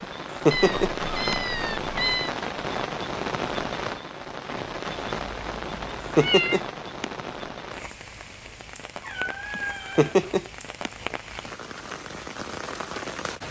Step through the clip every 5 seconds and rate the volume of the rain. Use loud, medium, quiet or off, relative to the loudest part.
loud, medium, medium.